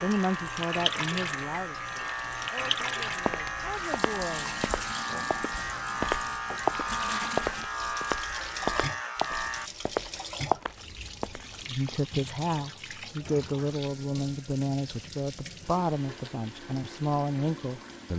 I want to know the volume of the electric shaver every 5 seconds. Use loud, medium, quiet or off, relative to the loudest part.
loud, loud, off, off.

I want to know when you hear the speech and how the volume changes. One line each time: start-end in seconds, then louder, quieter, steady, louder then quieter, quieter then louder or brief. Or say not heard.
0.0-4.5 quieter then louder
11.7-18.1 steady.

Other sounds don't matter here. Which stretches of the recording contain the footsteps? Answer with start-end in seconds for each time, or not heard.
3.2-11.9.